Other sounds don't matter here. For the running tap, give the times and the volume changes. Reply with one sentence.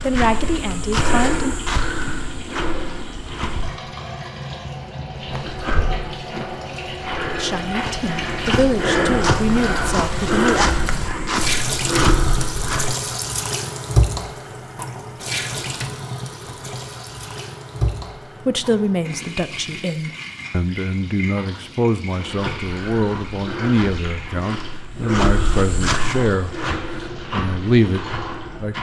You can hear the running tap from 0.0 to 28.7 s, getting louder then quieter.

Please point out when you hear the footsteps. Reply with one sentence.
You can hear the footsteps from 0.0 to 3.8 s, from 5.3 to 13.0 s and from 22.1 to 28.7 s.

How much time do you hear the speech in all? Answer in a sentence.
The speech can be heard for 15 seconds in total.